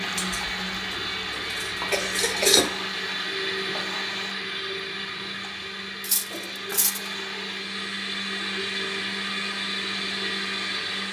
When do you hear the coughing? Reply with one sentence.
The coughing can be heard from 1.9 to 2.6 s and from 6.2 to 6.8 s.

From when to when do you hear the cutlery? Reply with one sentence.
You can hear the cutlery from 0.1 to 2.7 s and from 6.0 to 7.0 s.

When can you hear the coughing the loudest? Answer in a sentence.
The loudest moment of the coughing is at 2 seconds.